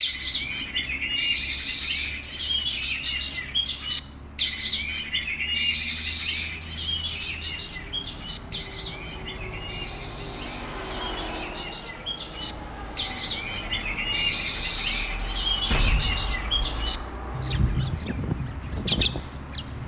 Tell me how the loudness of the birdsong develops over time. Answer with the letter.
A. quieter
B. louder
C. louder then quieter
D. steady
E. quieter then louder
E.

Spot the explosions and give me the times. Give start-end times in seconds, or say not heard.
15.7-16.9.